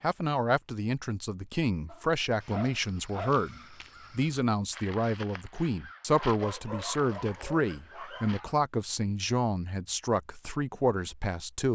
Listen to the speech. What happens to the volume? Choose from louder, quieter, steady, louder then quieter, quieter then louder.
steady.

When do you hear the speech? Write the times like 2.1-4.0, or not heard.
0.0-11.7.